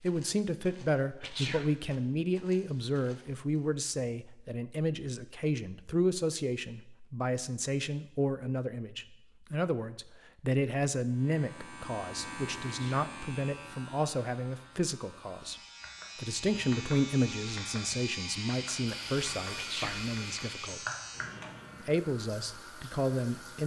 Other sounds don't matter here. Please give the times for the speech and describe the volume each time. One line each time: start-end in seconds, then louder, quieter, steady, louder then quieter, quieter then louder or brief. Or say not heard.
0.0-20.8 steady
21.8-23.6 brief.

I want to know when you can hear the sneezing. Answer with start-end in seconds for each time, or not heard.
1.2-1.6, 12.7-13.1, 19.6-20.0.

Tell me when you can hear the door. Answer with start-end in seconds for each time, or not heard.
not heard.